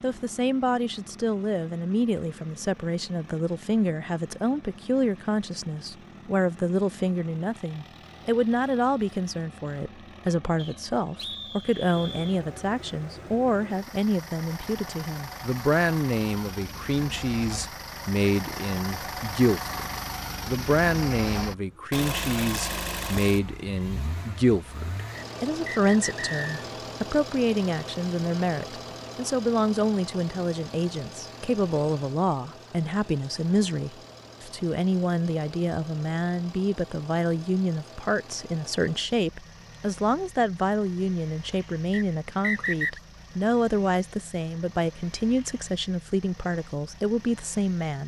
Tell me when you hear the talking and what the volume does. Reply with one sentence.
The talking can be heard from 0.0 to 48.0 s, at a steady volume.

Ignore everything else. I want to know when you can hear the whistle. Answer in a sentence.
The whistle can be heard from 10.6 to 12.4 s, from 25.1 to 26.4 s and from 41.9 to 43.0 s.